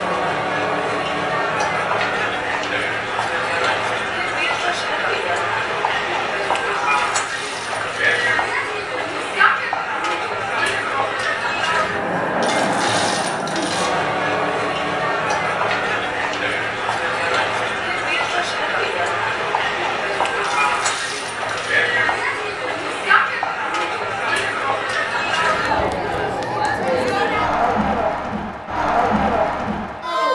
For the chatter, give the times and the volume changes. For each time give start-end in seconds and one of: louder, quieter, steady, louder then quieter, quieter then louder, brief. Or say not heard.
0.0-30.3 steady.